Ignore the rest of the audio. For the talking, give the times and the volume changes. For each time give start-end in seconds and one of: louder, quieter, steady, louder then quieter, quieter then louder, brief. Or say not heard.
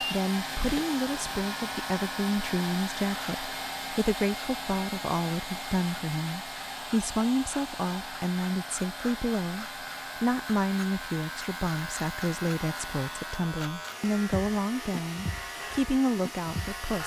0.0-17.0 steady.